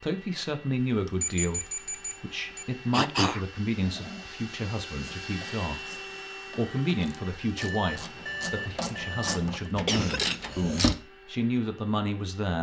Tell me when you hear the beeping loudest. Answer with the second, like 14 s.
1 s.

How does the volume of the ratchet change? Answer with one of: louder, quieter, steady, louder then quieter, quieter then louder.
louder.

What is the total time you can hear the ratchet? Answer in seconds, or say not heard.
6 s.